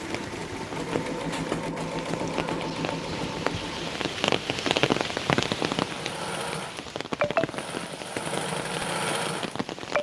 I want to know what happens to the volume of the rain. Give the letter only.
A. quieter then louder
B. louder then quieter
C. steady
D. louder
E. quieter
B.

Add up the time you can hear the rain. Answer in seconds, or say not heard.
10 s.